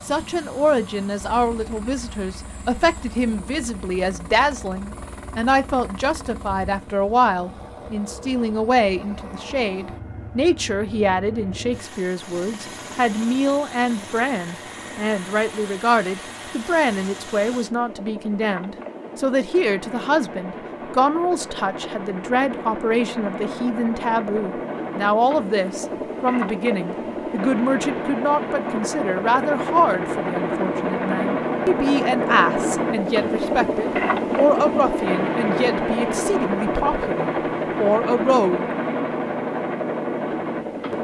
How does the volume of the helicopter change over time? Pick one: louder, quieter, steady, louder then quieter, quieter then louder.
louder.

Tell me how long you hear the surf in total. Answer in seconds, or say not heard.
not heard.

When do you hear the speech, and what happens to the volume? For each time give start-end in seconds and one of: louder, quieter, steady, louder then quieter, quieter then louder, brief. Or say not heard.
0.1-38.6 steady.